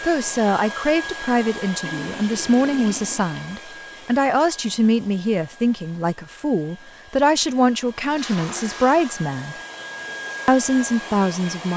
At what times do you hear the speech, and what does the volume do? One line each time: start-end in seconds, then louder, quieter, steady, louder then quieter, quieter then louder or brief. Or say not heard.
0.0-9.6 steady
10.4-11.7 brief.